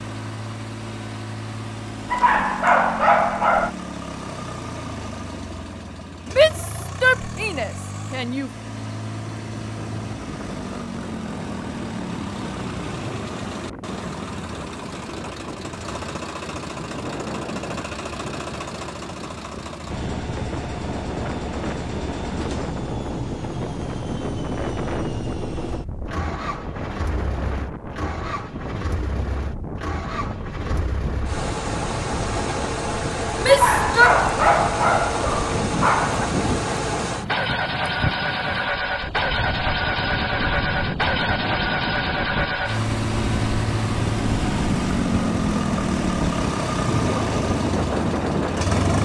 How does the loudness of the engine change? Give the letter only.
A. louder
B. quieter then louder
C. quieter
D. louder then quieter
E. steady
A.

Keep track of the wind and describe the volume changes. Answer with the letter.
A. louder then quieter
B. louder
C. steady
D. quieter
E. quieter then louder
B.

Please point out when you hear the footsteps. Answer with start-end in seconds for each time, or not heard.
not heard.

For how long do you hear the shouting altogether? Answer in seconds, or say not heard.
3 s.